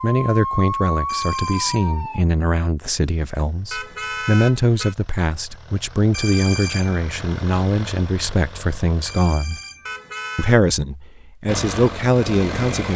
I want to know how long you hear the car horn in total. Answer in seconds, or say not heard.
2 s.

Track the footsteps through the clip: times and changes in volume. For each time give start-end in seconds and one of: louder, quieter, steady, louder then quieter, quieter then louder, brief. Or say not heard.
not heard.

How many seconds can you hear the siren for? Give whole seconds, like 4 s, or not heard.
2 s.